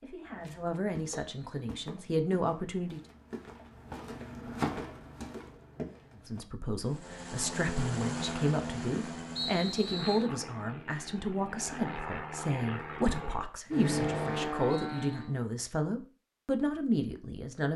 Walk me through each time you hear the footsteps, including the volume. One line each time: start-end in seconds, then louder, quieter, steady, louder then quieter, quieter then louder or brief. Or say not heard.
0.2-6.4 louder then quieter.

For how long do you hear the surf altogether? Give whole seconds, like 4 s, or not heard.
not heard.